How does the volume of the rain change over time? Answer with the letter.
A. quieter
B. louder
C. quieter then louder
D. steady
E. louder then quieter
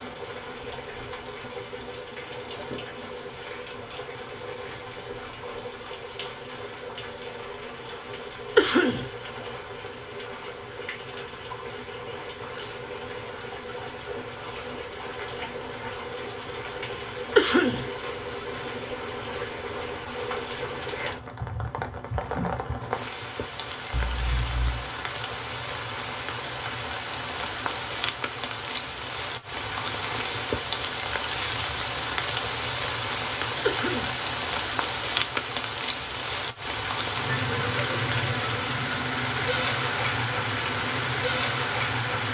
B.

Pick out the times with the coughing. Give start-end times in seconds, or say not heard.
8.6-9.1, 17.4-17.9, 33.6-34.1.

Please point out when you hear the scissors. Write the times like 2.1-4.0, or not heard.
23.9-24.9.